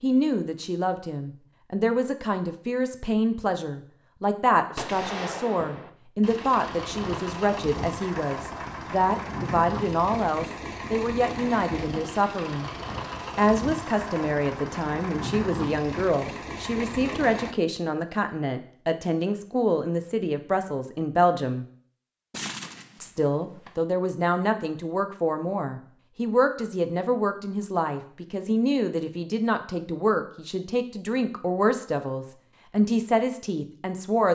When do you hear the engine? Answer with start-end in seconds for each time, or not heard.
6.2-17.6.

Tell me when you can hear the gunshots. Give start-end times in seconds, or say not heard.
4.8-5.9, 22.3-23.8.